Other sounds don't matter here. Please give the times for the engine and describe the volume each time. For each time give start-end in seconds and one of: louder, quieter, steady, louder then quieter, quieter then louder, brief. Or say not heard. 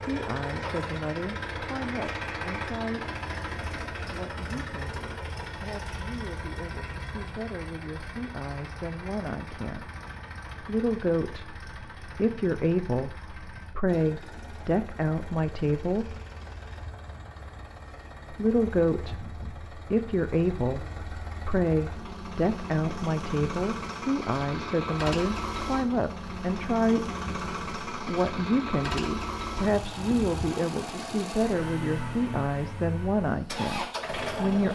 0.0-34.7 quieter then louder.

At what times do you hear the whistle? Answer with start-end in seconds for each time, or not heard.
not heard.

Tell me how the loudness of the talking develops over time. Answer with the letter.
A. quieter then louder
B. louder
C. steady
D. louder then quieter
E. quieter
B.